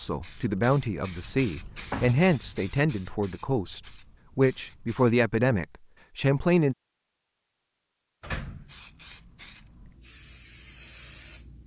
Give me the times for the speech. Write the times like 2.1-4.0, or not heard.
0.0-6.8.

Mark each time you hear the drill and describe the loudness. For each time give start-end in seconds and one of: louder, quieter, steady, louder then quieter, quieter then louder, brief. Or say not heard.
not heard.